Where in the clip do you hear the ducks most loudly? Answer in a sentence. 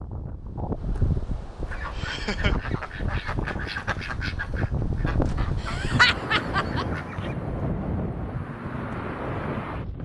The loudest moment of the ducks is at 4 seconds.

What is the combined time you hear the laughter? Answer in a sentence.
The laughter can be heard for 2 seconds in total.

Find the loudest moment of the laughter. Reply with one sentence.
The loudest moment of the laughter is at 6 seconds.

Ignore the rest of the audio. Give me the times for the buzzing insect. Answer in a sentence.
The buzzing insect can't be heard in this clip.